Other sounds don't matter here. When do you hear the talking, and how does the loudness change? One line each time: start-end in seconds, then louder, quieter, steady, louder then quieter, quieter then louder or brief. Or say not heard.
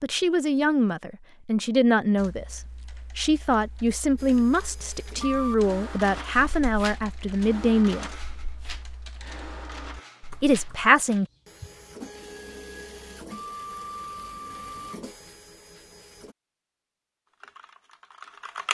0.0-8.1 steady
10.4-11.2 brief.